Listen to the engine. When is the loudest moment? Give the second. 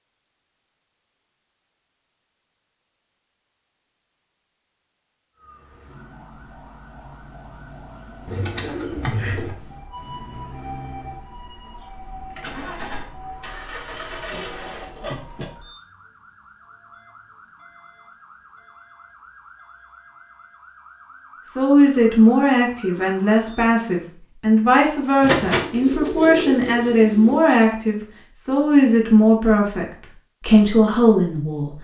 15 s.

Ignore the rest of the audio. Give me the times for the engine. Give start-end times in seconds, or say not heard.
9.9-15.4.